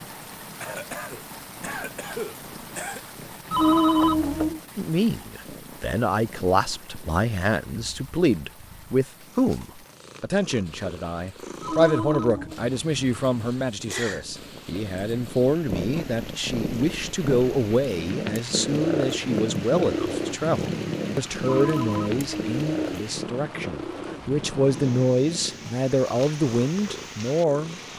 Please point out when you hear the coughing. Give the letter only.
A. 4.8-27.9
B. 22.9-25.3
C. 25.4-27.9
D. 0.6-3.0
D.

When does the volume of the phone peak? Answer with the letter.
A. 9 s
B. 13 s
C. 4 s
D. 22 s
C.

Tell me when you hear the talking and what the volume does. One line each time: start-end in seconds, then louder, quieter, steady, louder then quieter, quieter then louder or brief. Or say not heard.
4.8-27.9 steady.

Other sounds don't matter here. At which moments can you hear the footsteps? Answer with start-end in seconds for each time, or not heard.
not heard.